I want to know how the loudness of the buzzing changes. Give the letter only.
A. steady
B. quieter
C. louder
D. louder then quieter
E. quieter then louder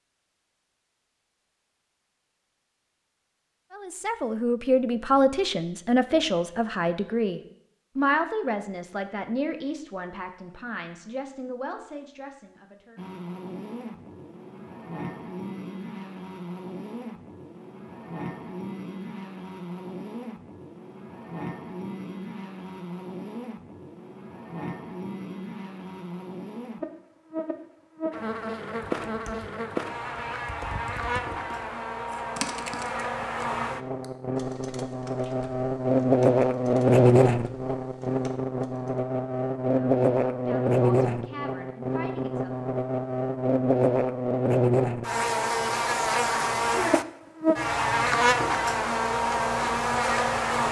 C.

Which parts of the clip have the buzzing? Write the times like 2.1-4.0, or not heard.
12.9-50.6.